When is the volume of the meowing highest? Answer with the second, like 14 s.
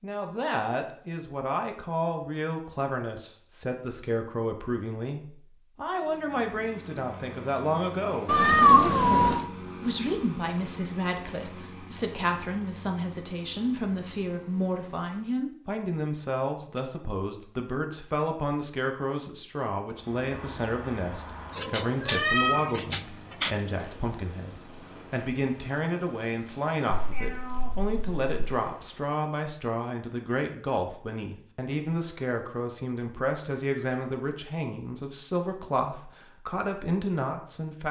9 s.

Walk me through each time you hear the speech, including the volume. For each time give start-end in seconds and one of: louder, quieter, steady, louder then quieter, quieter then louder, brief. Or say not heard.
0.0-37.8 steady.